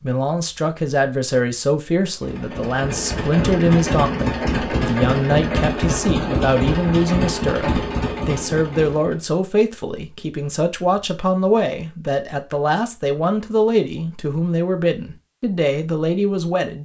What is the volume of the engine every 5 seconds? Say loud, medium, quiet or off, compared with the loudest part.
loud, loud, off, off.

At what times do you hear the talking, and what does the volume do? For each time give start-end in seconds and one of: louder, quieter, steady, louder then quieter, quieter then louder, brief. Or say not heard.
0.0-16.7 steady.